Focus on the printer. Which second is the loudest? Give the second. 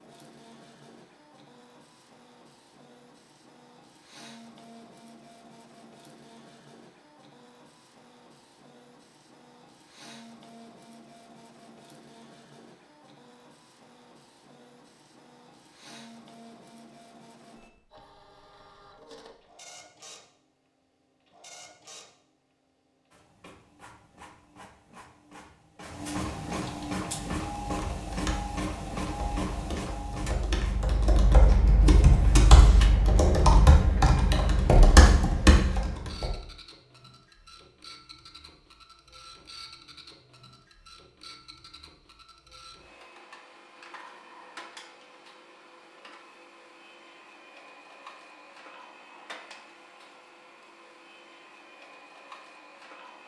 27 s.